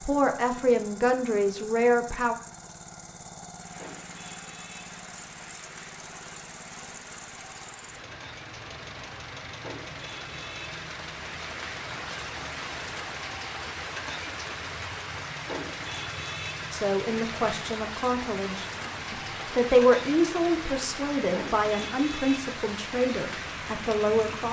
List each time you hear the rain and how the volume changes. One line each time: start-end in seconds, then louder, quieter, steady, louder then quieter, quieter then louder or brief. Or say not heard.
3.5-24.4 louder.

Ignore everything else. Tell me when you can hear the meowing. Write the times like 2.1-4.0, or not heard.
not heard.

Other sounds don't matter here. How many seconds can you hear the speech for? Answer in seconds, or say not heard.
10 s.